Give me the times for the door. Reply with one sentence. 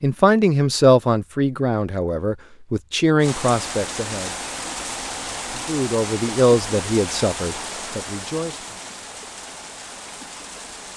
You can't hear the door here.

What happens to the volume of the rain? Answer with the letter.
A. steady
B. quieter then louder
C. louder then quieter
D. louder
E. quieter
E.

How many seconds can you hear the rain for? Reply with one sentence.
You can hear the rain for 8 seconds altogether.